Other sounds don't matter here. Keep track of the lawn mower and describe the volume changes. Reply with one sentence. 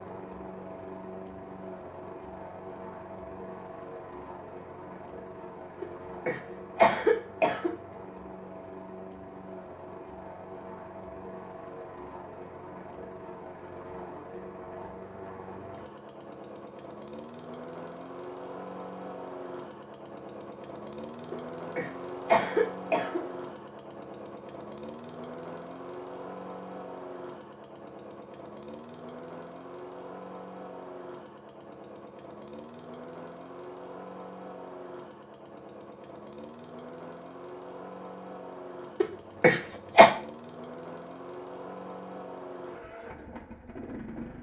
The loudness of the lawn mower stays about the same.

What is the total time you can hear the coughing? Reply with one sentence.
You can hear the coughing for 5 seconds altogether.